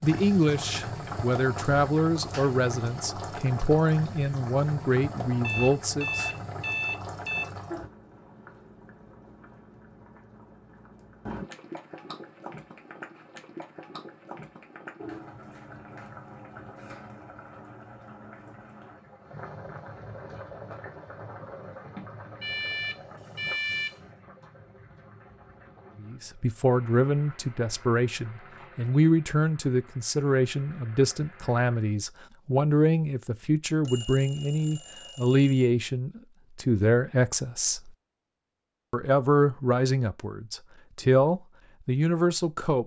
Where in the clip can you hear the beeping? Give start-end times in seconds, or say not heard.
5.4-7.5, 22.4-23.9, 33.8-35.7.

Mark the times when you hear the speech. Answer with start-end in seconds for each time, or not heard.
0.0-6.3, 26.0-37.9, 38.9-42.8.